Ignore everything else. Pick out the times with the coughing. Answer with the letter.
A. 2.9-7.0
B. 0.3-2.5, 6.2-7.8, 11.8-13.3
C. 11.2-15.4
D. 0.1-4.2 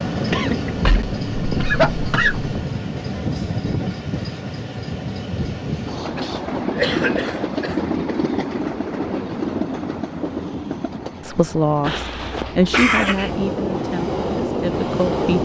B.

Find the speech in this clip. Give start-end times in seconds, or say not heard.
11.2-15.4.